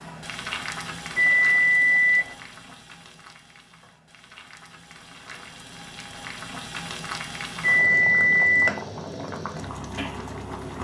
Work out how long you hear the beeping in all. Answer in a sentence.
The beeping can be heard for 2 seconds in total.